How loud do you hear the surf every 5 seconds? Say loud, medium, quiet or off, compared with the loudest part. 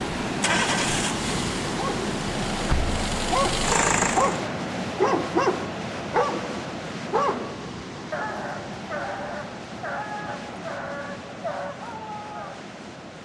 loud, medium, medium.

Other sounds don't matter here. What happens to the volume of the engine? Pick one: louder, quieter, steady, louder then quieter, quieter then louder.
quieter then louder.